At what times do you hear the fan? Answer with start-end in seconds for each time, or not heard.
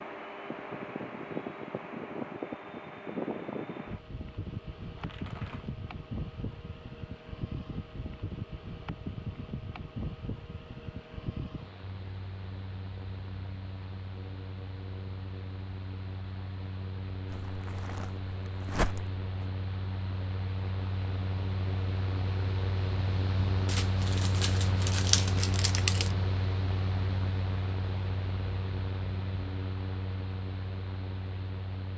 0.0-31.9.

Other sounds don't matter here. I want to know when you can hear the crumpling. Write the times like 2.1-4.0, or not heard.
5.0-5.8, 17.2-19.2, 23.6-26.1.